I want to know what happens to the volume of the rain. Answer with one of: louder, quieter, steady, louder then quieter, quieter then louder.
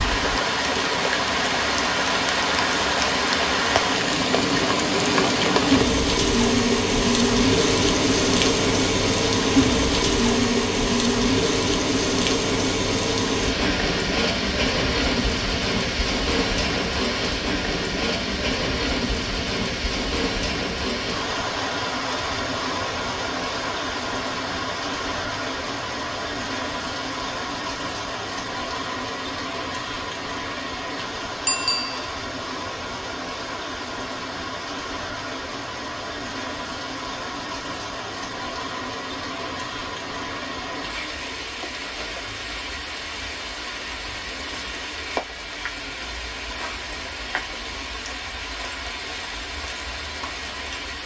quieter.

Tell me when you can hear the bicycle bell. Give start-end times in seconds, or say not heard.
31.4-32.0.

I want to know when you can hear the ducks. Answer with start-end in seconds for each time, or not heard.
not heard.